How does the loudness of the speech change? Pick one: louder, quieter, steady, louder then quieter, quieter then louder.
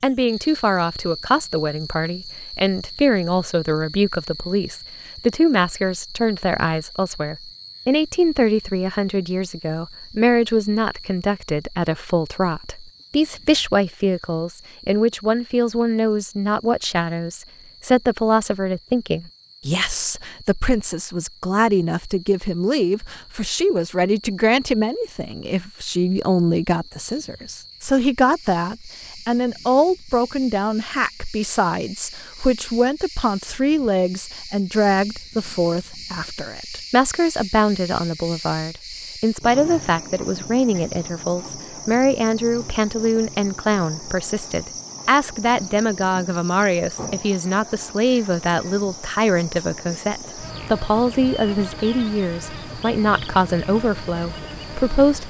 steady.